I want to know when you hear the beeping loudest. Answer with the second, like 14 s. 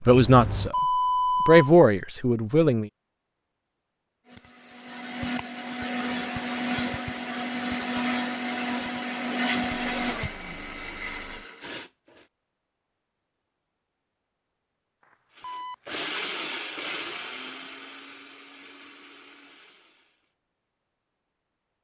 1 s.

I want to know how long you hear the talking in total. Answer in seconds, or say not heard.
2 s.